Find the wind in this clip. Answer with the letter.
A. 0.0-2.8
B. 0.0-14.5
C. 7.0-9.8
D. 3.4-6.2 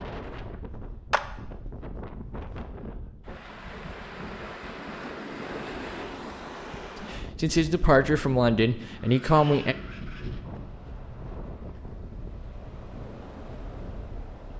B.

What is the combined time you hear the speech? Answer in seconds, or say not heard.
3 s.